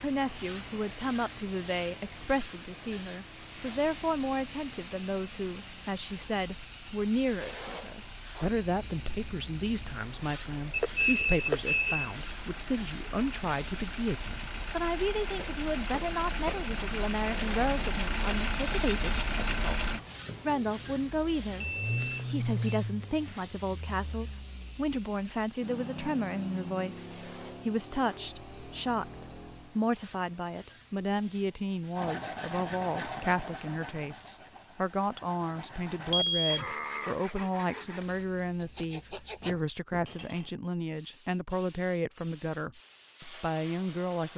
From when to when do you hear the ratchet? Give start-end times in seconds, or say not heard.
not heard.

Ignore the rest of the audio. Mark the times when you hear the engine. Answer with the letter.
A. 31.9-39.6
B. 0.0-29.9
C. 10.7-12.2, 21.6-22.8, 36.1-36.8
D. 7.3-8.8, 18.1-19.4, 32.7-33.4
B.